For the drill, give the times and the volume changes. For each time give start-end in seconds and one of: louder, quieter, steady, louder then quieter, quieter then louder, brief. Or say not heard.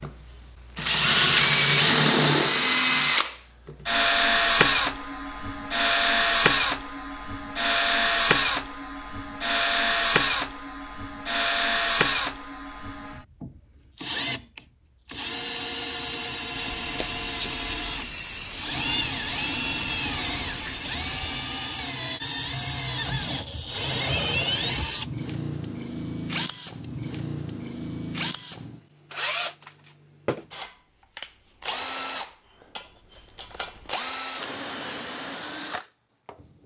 0.0-36.6 quieter.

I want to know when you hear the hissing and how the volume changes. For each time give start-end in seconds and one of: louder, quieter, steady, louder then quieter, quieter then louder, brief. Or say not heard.
16.5-21.2 steady.